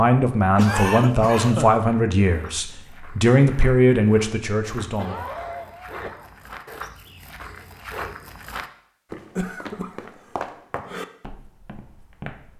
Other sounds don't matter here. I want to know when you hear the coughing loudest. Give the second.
1 s.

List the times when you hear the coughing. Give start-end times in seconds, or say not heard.
0.6-1.8, 5.0-6.3, 9.3-11.1.